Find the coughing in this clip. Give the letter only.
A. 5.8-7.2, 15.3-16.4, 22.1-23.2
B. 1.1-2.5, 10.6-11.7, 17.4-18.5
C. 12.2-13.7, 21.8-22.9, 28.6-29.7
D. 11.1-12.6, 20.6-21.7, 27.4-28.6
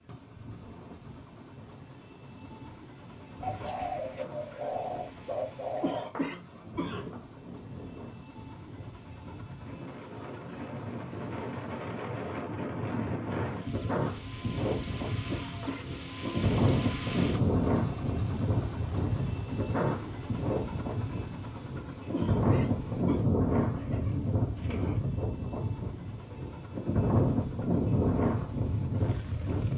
A.